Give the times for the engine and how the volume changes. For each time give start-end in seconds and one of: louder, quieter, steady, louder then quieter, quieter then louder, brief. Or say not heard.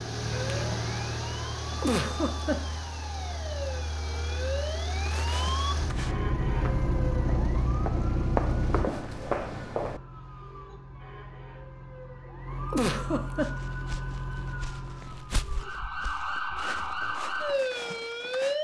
0.0-8.9 quieter then louder.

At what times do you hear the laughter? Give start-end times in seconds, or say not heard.
1.8-2.8, 12.7-13.4.